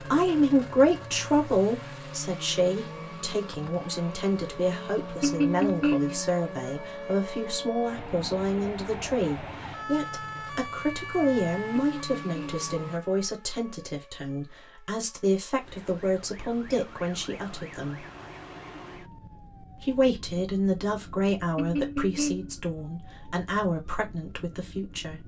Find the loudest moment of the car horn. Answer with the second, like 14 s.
6 s.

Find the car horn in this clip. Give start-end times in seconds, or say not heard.
5.2-6.2, 11.9-12.7, 21.6-22.6.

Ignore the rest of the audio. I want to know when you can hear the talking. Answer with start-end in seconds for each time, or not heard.
0.0-18.1, 19.8-25.2.